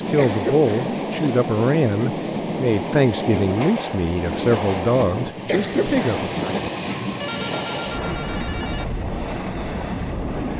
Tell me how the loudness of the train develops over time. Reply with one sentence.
The loudness of the train stays about the same.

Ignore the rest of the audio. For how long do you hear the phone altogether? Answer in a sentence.
You can hear the phone for 2 seconds altogether.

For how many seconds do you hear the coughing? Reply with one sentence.
You can hear the coughing for 2 seconds altogether.